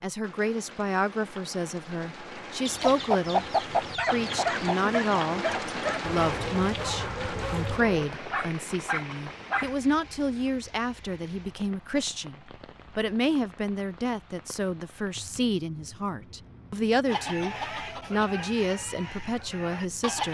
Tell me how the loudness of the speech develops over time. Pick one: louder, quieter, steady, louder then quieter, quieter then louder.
steady.